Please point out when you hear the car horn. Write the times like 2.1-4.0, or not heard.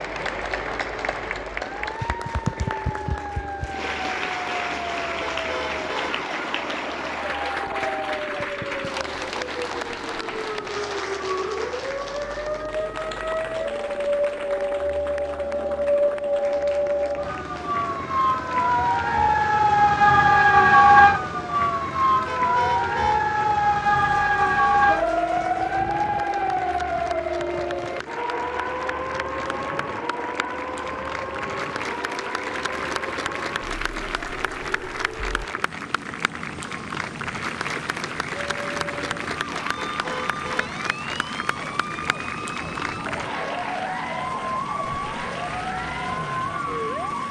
5.3-6.2, 22.2-23.2, 39.9-40.8.